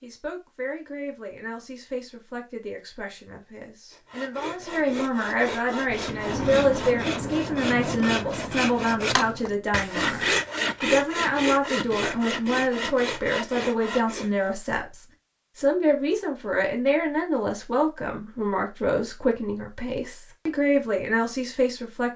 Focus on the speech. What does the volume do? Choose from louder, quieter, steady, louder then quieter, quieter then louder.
louder.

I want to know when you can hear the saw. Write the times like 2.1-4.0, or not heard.
3.9-14.5.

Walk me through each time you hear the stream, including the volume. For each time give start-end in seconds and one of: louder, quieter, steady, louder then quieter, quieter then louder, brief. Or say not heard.
not heard.